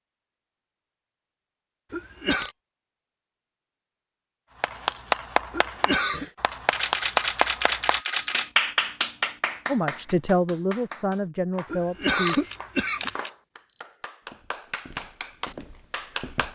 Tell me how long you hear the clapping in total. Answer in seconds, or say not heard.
12 s.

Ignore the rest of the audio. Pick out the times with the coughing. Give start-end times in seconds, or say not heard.
1.9-2.5, 5.5-6.2, 11.7-13.1.